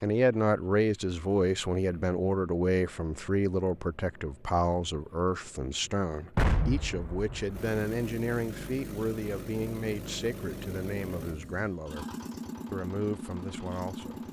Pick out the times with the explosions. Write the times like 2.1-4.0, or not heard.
6.3-7.7.